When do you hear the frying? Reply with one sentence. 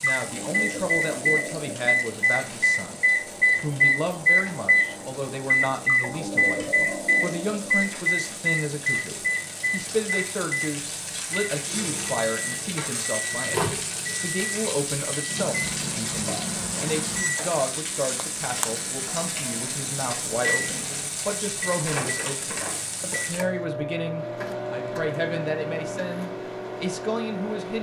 The frying can be heard from 0.0 to 23.4 s.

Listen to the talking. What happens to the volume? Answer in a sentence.
The loudness of the talking stays about the same.